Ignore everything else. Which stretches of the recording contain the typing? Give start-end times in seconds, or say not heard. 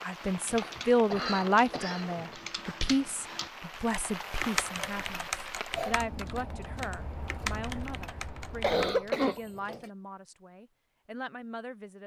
0.2-9.3.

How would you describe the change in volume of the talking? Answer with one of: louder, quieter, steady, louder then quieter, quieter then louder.
quieter.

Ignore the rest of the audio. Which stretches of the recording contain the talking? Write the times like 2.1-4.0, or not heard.
0.0-12.0.